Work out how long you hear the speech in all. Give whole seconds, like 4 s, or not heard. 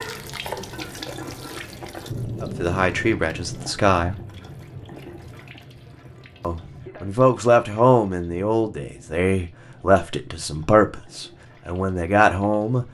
8 s.